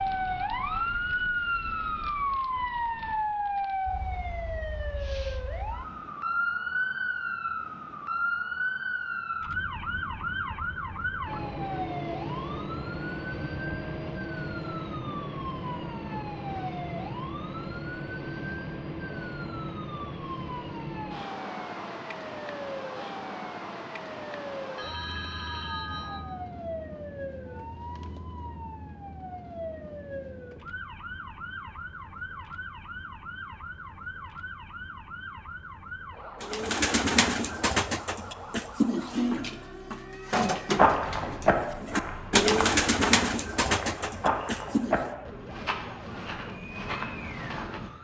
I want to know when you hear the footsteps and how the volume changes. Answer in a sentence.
You can hear the footsteps from 40.8 to 47.9 s, getting quieter.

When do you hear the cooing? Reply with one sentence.
You can hear the cooing from 36.4 to 45.0 s.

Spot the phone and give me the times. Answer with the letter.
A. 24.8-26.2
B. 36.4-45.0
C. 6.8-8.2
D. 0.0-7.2
A.